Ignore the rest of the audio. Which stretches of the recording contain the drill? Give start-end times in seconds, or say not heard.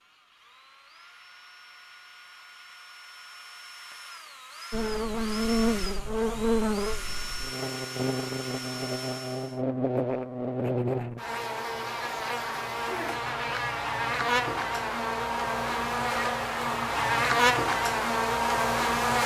0.0-9.6.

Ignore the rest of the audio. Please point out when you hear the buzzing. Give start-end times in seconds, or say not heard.
4.7-19.2.